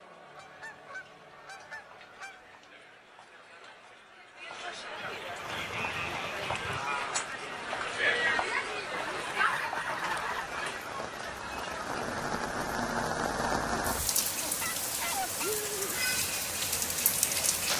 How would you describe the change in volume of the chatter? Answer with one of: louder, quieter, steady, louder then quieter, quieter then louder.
louder then quieter.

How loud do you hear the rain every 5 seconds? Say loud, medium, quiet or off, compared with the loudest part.
off, quiet, loud, loud.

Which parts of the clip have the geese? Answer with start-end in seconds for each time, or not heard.
0.3-2.5, 5.0-6.8, 8.9-10.8, 14.3-16.0.